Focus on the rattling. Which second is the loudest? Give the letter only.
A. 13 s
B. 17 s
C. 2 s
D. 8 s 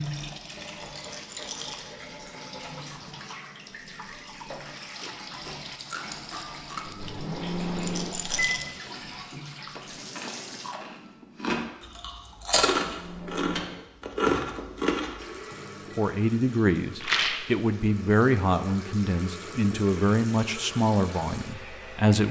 B.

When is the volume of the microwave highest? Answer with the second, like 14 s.
8 s.